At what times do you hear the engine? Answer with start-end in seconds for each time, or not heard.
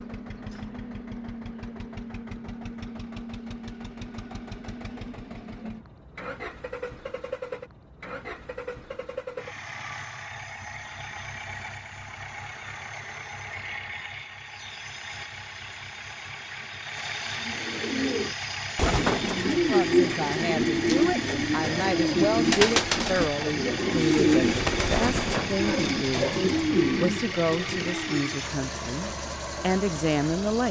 0.0-30.6.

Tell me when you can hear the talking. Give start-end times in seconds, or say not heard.
19.4-30.6.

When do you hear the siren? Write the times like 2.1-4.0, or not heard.
not heard.